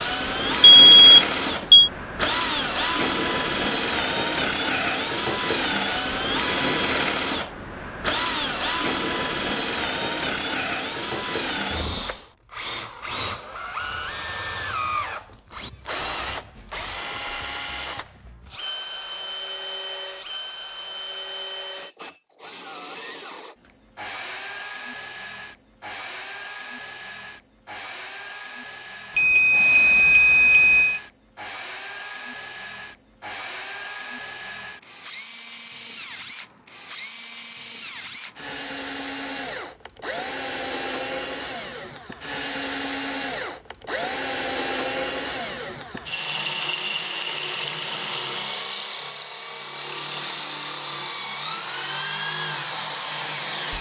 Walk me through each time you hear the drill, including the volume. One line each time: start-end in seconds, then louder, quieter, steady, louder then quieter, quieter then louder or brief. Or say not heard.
0.0-53.7 quieter then louder.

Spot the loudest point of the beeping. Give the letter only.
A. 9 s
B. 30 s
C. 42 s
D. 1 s
D.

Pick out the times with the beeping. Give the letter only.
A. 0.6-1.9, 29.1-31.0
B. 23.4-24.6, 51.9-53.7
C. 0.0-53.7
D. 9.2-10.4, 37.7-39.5
A.